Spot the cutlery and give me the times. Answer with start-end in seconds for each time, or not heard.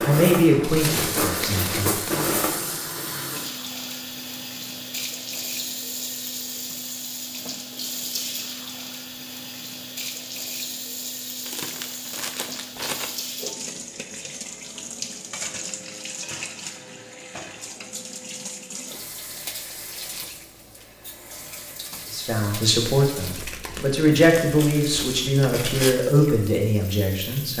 0.0-3.1.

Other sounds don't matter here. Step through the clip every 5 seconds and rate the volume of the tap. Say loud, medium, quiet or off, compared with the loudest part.
loud, loud, loud, loud, medium, medium.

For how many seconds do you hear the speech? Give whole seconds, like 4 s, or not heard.
8 s.